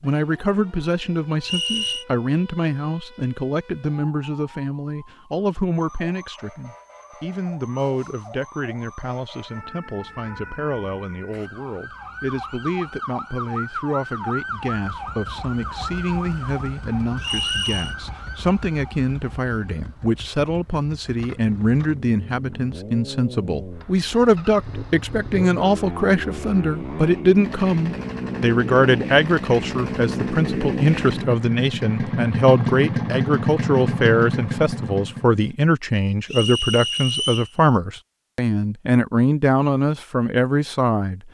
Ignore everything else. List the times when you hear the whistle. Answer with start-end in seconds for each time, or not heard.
1.4-2.0, 17.2-17.9, 36.2-37.5.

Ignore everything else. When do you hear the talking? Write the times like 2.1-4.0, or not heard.
0.0-41.2.